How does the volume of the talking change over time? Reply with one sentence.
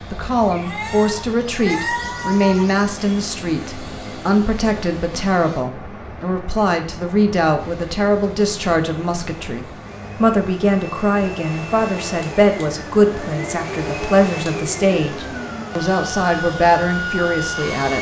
The loudness of the talking stays about the same.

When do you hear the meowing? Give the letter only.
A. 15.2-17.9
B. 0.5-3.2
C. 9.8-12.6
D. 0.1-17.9
B.